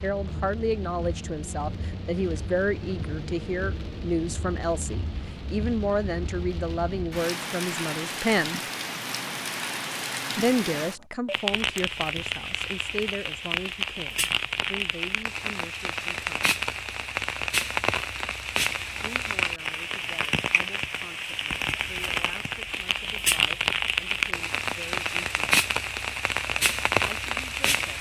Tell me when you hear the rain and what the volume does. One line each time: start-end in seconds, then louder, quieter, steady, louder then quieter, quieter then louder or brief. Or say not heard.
0.0-27.9 louder.